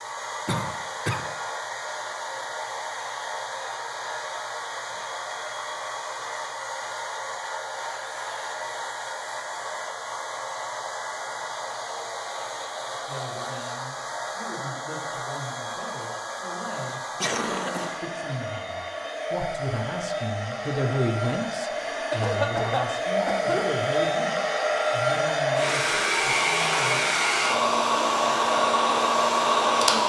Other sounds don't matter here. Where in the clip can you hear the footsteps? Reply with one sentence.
The footsteps can't be heard in this clip.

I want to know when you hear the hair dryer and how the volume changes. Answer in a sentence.
You can hear the hair dryer from 0.0 to 30.0 s, getting louder.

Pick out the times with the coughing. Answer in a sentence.
You can hear the coughing from 0.5 to 1.2 s, from 17.2 to 17.9 s and from 22.1 to 23.8 s.